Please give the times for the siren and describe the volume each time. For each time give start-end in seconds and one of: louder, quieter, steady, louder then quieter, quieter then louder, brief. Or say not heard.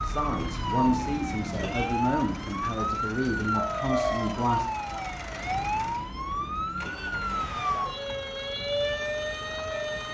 0.0-10.0 steady.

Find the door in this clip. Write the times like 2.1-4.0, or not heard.
not heard.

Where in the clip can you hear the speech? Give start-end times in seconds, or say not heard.
0.0-4.7.